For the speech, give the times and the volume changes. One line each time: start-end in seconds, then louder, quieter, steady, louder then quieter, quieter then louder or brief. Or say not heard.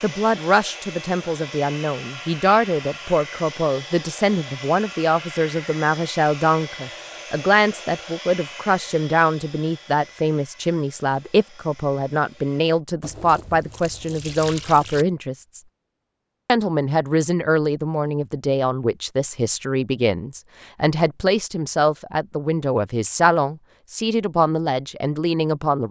0.0-15.6 steady
16.4-25.8 steady.